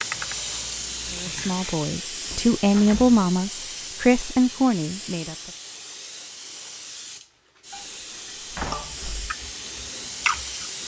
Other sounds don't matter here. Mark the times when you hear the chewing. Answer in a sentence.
You can hear the chewing from 0.0 to 1.8 s and from 8.7 to 10.8 s.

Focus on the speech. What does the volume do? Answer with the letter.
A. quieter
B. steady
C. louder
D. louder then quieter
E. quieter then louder
C.